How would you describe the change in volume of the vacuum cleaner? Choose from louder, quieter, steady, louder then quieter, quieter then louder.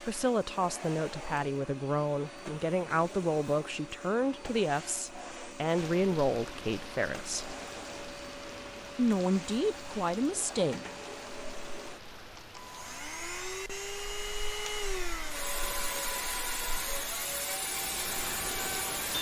louder.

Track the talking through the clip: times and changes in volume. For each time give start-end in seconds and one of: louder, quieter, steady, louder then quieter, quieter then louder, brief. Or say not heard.
0.0-7.5 steady
8.9-10.8 brief.